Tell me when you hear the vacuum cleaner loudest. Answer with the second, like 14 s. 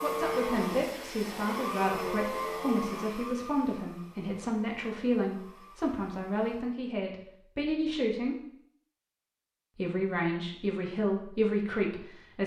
2 s.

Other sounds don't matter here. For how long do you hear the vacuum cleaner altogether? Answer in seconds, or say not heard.
7 s.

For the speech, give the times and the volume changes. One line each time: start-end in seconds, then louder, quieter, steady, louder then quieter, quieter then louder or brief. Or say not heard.
0.0-8.3 steady
9.8-12.4 brief.